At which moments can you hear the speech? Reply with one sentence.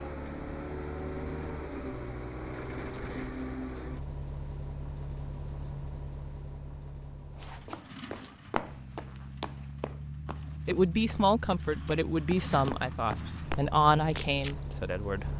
You can hear the speech from 10.7 to 15.3 s.